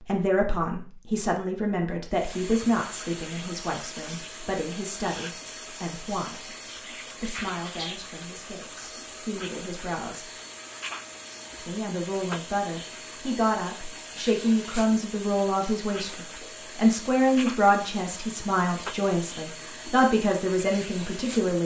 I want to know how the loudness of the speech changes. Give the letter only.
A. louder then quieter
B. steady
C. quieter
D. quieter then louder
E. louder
D.